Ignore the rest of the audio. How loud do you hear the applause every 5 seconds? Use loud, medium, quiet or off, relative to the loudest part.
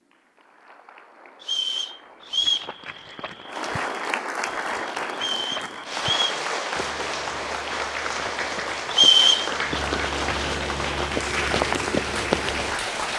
medium, loud, loud.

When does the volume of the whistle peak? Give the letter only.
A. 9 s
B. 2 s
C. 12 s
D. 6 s
A.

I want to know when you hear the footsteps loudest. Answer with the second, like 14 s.
12 s.